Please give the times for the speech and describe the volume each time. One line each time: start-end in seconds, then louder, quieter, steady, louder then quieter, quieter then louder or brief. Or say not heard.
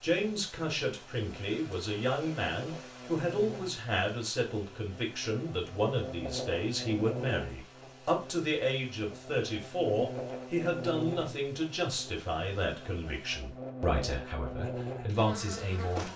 0.0-16.1 steady.